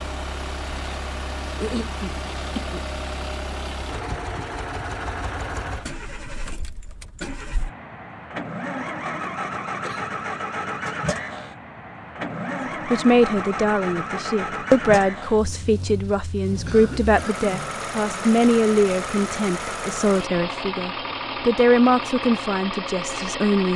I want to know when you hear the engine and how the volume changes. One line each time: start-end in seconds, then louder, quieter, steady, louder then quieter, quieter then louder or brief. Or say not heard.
0.0-23.7 steady.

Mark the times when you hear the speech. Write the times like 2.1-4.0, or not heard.
12.8-23.7.